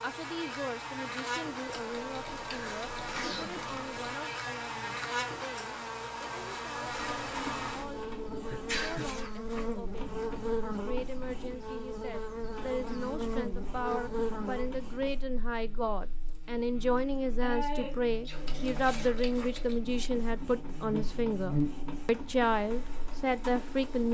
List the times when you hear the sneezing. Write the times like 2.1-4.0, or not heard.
2.5-3.8, 8.5-9.2, 16.9-18.4.